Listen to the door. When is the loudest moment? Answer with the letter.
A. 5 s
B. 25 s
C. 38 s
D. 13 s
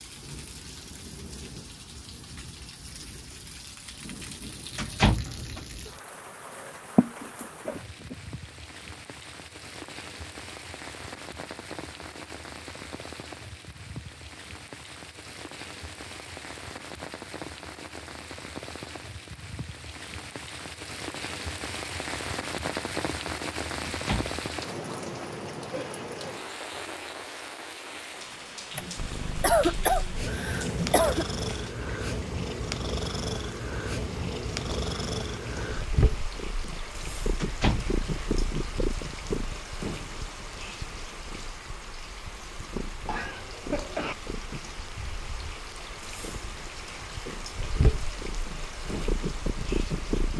A.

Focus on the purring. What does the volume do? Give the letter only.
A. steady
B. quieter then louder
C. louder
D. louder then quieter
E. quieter
B.